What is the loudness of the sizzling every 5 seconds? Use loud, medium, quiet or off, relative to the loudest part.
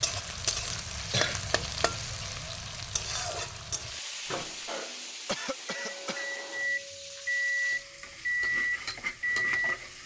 loud, medium.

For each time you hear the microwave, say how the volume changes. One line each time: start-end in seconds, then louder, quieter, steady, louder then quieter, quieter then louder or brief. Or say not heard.
4.2-9.8 louder.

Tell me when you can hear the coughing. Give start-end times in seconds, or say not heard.
0.7-1.6, 5.2-6.3.